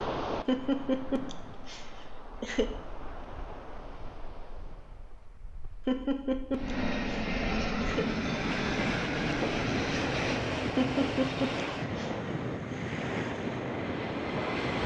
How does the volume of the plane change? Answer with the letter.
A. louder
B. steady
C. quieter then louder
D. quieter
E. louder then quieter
D.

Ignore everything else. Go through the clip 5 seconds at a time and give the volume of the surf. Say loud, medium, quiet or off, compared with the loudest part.
medium, loud, loud.